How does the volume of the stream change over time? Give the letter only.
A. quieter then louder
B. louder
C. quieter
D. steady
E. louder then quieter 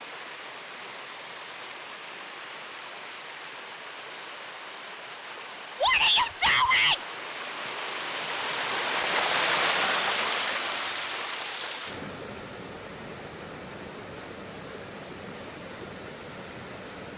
E.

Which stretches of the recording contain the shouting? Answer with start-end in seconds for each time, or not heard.
5.8-7.0.